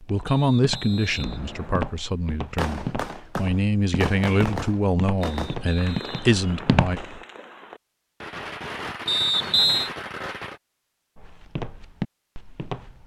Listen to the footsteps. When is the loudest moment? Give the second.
7 s.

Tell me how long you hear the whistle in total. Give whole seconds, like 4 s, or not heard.
4 s.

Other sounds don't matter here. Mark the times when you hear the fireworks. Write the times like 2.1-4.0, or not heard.
2.5-10.6.